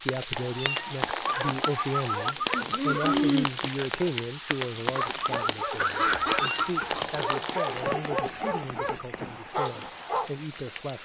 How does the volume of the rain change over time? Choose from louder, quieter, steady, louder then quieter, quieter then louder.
quieter.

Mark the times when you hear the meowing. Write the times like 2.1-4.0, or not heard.
0.3-2.4, 6.1-7.8.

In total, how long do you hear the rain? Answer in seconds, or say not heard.
11 s.